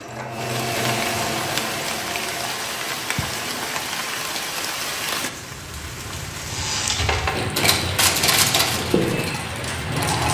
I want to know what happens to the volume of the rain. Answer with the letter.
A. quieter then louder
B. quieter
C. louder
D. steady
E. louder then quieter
D.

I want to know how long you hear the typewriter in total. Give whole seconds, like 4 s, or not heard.
4 s.